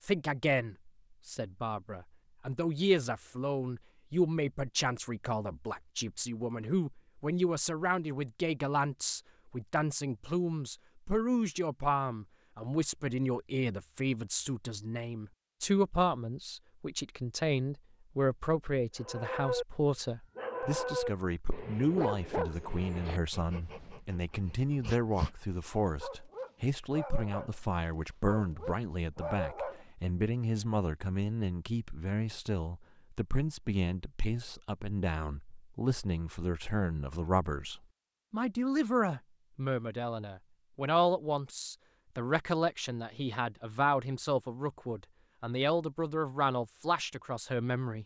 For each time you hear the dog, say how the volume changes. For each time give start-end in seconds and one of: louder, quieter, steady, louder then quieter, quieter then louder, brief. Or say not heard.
18.9-19.6 brief
20.4-25.4 quieter
26.0-27.6 brief
28.2-29.9 brief.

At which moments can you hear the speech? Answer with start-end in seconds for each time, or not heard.
0.1-48.0.